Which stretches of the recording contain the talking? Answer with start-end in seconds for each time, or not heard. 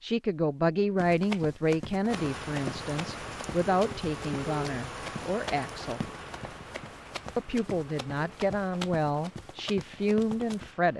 0.0-6.0, 7.3-10.9.